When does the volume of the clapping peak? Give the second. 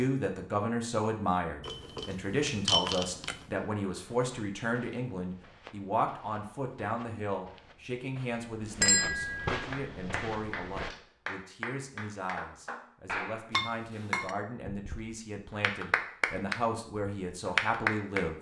18 s.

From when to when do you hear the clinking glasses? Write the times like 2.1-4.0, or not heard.
1.6-3.5, 8.8-9.6, 13.5-14.3.